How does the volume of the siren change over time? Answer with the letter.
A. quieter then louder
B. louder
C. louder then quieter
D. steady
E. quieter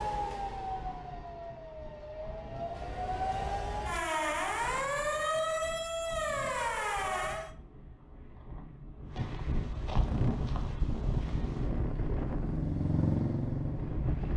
B.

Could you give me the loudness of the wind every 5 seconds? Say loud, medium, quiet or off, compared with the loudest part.
quiet, medium, loud.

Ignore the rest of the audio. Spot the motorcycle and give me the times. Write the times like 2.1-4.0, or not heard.
10.0-14.3.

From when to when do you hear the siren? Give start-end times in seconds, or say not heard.
0.0-7.5.